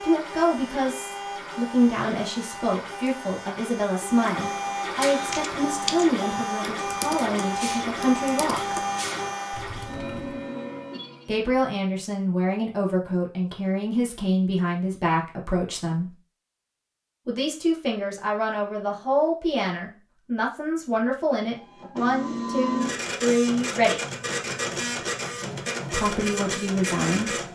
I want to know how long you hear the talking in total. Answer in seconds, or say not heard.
22 s.